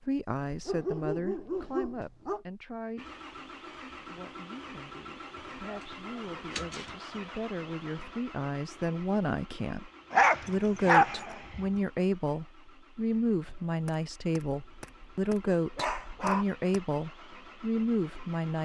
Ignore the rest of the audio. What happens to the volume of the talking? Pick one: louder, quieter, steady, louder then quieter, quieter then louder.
quieter then louder.